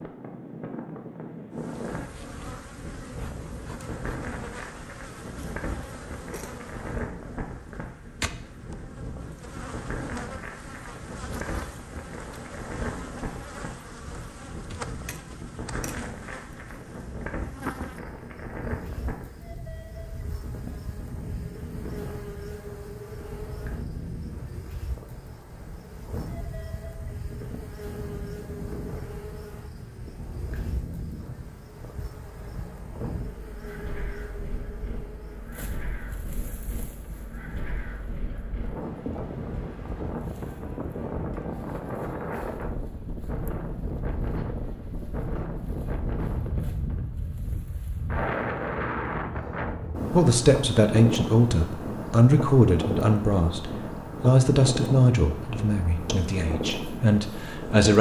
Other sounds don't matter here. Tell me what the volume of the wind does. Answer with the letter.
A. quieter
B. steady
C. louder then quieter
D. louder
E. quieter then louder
D.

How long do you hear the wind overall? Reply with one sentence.
You can hear the wind for 58 seconds altogether.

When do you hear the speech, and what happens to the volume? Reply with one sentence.
You can hear the speech from 50.1 to 57.9 s, getting quieter.